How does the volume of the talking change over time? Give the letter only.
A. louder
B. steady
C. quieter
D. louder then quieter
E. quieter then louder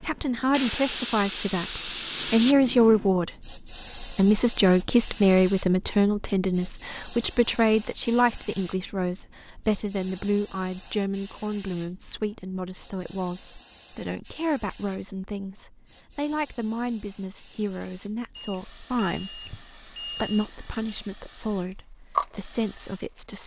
C.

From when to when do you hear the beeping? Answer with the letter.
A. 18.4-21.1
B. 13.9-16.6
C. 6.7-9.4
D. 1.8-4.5
A.